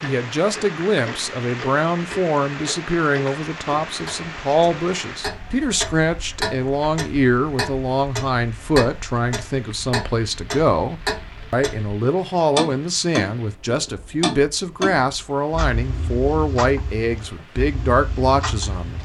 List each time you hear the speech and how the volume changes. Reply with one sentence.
You can hear the speech from 0.0 to 19.0 s, at a steady volume.